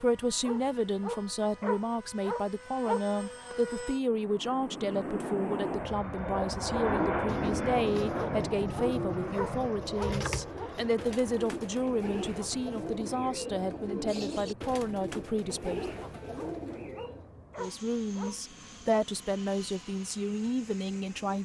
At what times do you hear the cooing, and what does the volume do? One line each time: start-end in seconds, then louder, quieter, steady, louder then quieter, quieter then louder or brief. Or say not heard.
6.7-17.3 steady.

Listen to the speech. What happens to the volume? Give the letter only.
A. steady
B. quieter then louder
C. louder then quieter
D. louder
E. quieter
A.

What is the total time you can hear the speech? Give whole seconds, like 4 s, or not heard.
20 s.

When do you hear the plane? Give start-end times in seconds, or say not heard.
0.0-21.4.